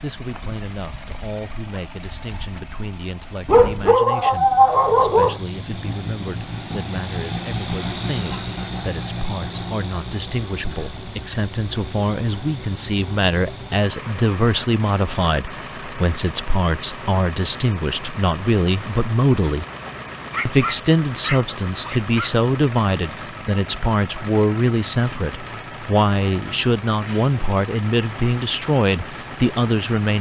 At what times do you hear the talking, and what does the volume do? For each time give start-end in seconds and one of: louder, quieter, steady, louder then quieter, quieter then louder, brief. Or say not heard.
0.0-19.6 louder
20.4-30.1 steady.